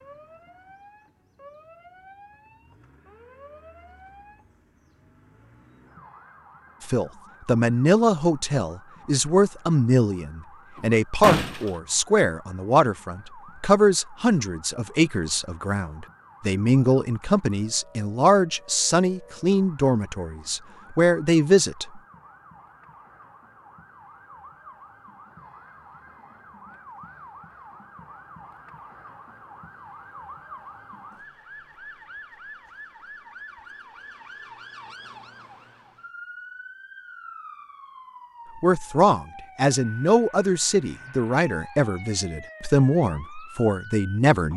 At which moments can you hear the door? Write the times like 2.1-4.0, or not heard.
11.2-11.7.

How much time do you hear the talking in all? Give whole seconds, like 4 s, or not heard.
21 s.